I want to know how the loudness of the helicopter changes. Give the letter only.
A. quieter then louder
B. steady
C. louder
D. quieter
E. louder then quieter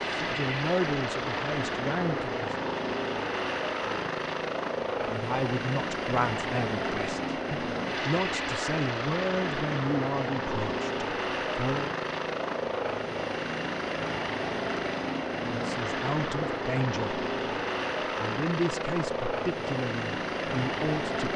B.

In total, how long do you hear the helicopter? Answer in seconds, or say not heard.
21 s.